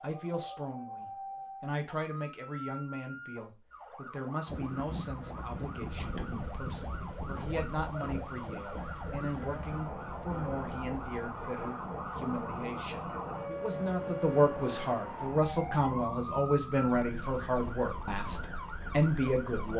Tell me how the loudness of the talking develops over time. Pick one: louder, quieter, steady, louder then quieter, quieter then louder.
louder.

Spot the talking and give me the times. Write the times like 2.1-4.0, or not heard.
0.0-19.7.